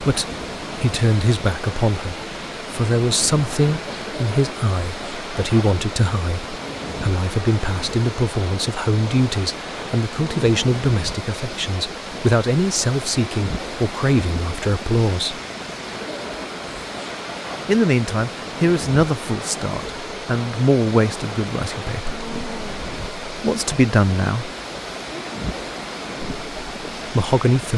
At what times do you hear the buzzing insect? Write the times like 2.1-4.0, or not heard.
not heard.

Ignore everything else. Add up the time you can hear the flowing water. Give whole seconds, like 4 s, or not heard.
28 s.